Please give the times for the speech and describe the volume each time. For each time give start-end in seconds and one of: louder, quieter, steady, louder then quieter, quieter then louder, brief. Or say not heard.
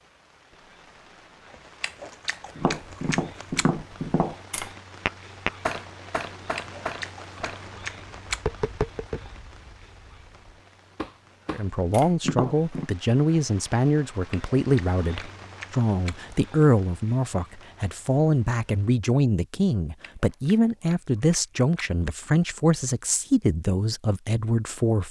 11.5-25.0 steady.